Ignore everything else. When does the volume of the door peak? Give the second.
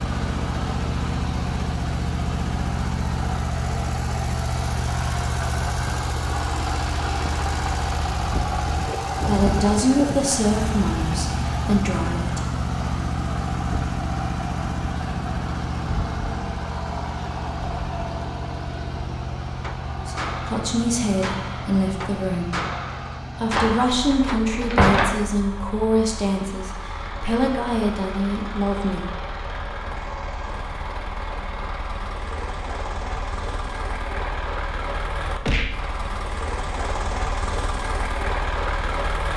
25 s.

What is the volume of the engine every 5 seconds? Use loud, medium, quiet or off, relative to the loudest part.
loud, loud, loud, loud, medium, medium, medium, loud.